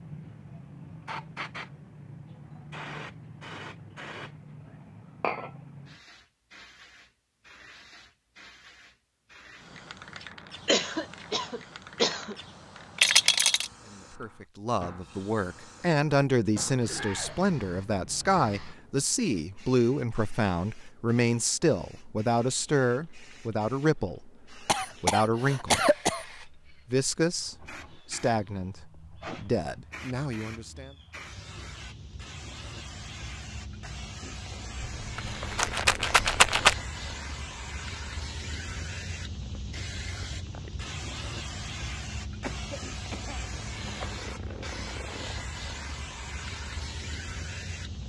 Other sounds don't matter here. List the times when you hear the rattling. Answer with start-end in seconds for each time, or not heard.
12.9-13.7, 35.0-36.8.